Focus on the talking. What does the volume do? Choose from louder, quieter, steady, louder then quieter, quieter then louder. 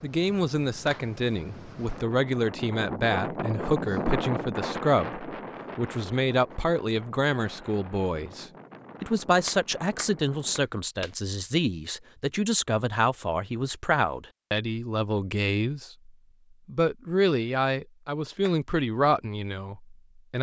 steady.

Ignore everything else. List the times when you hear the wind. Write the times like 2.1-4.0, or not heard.
0.0-10.7.